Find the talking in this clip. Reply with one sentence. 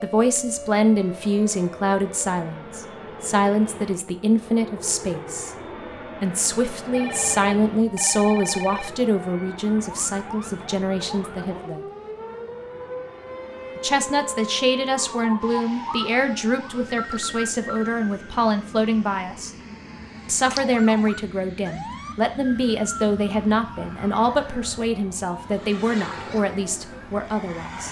The talking can be heard from 0.0 to 5.5 s, from 6.2 to 11.8 s, from 13.8 to 19.5 s and from 20.2 to 27.8 s.